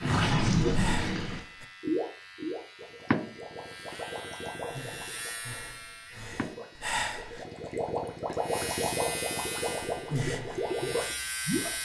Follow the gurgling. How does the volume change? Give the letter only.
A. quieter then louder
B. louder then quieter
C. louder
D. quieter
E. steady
A.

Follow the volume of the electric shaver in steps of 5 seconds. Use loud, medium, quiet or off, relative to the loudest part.
medium, loud, loud.